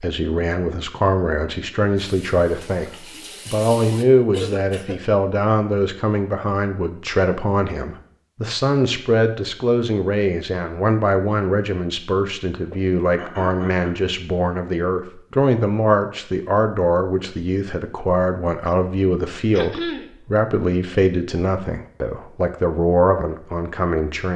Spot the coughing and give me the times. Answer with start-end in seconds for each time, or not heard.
4.3-5.0, 12.6-13.9, 19.5-20.1.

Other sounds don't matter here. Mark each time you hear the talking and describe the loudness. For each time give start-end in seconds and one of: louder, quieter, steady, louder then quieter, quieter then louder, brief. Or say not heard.
0.0-24.3 steady.